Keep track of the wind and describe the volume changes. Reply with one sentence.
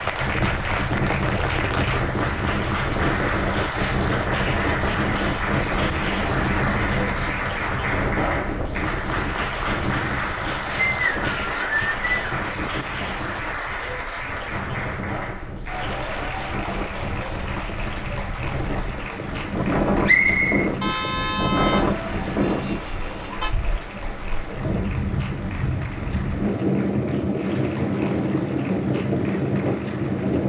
The volume of the wind goes down, then up.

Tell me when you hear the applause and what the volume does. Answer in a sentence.
The applause can be heard from 0.0 to 30.4 s, getting quieter.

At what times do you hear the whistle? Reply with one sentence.
The whistle can be heard from 10.8 to 12.4 s and from 20.1 to 20.7 s.